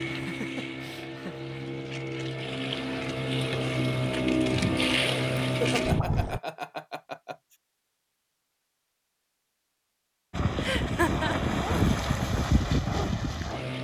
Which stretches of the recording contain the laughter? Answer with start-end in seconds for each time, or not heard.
0.1-1.4, 5.4-7.3, 10.6-11.6.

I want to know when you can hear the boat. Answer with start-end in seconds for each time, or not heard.
0.0-6.4, 10.3-13.8.